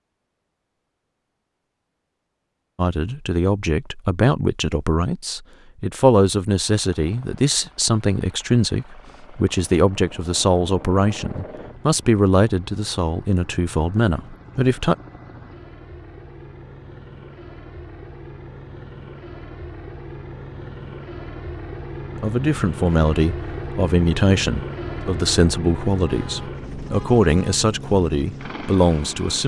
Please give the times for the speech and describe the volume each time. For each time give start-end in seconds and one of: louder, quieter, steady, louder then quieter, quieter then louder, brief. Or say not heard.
2.8-14.9 steady
22.1-29.4 steady.